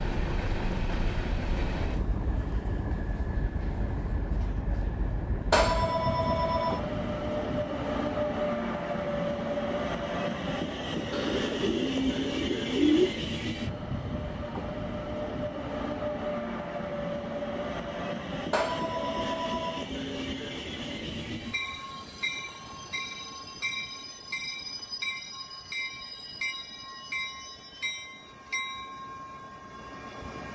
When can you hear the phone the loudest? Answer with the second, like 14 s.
6 s.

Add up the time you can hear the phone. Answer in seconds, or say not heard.
3 s.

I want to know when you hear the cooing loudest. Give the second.
13 s.